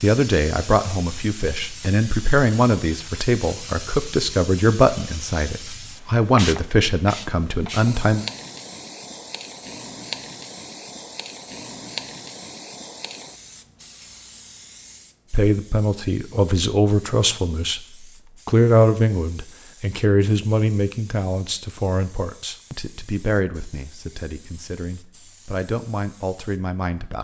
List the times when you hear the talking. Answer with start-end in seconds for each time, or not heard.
0.0-8.2, 15.3-17.8, 18.4-27.1.